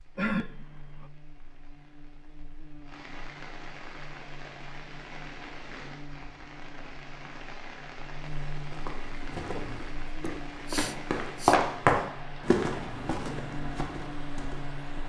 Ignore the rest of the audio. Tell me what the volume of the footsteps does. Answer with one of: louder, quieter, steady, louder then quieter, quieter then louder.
louder then quieter.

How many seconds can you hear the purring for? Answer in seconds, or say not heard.
not heard.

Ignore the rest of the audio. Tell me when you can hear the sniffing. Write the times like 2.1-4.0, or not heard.
0.1-1.1, 10.2-11.6.